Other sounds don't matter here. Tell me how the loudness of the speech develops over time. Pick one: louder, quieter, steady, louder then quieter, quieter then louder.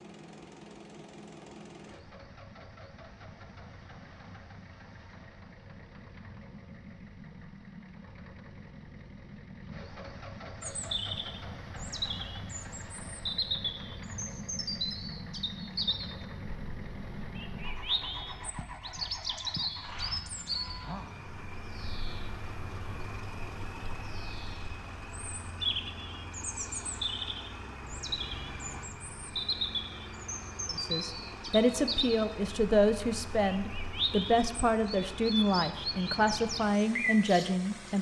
steady.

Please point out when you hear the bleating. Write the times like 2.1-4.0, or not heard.
not heard.